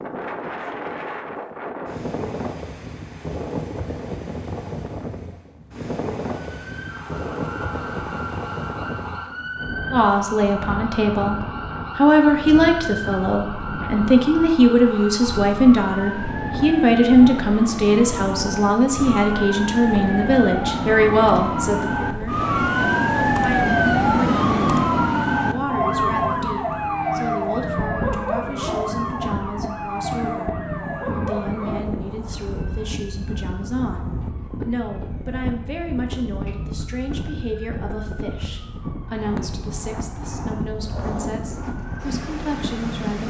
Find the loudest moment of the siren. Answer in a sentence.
The volume of the siren peaks at 24 seconds.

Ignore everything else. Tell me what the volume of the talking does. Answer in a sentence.
The volume of the talking goes down.